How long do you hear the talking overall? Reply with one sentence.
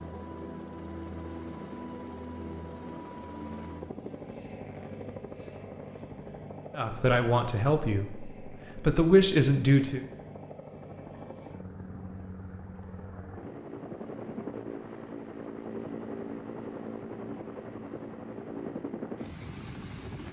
The talking can be heard for 3 seconds in total.